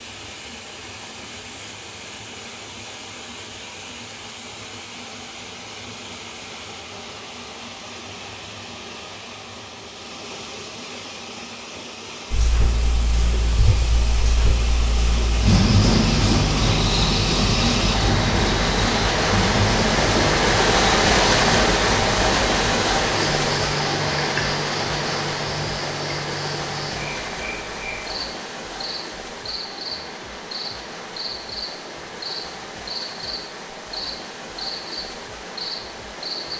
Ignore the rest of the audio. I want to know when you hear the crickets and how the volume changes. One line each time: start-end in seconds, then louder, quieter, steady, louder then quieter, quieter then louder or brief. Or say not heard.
12.3-36.5 quieter.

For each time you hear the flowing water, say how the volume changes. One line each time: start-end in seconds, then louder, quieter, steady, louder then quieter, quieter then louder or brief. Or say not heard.
0.0-36.5 louder then quieter.